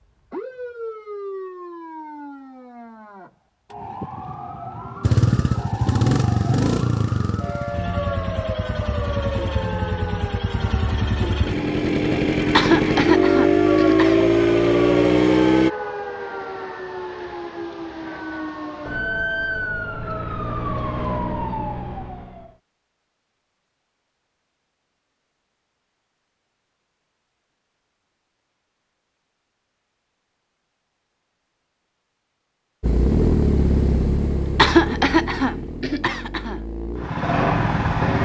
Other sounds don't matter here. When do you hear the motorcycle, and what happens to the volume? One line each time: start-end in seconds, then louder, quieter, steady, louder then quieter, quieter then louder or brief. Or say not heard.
5.0-15.7 quieter then louder
32.8-38.2 quieter then louder.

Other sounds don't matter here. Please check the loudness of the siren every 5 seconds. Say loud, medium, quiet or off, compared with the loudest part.
medium, loud, loud, loud, loud, off, off, off.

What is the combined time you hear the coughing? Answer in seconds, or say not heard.
4 s.